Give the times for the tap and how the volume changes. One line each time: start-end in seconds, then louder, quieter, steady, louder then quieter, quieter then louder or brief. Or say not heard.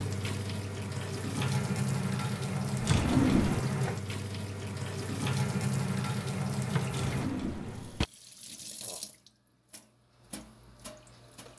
0.0-11.5 quieter.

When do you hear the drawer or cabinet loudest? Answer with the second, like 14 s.
3 s.